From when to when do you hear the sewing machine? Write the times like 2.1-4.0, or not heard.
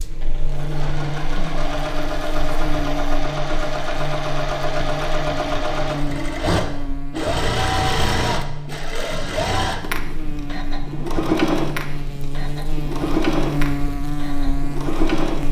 0.0-15.4.